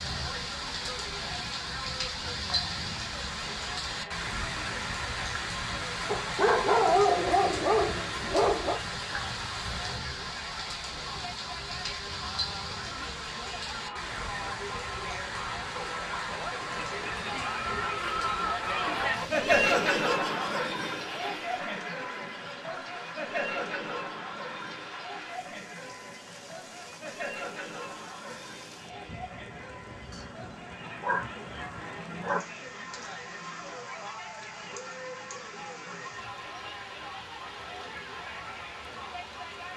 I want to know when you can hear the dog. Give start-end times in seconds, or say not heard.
6.0-8.8, 30.1-31.3, 32.0-32.5.